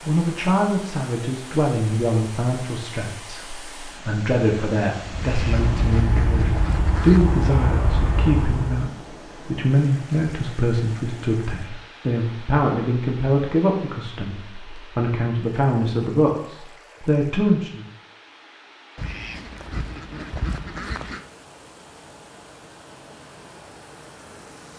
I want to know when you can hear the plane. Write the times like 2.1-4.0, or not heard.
5.2-8.8.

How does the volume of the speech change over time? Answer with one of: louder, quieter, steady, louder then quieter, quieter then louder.
steady.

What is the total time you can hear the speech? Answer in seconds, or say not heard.
18 s.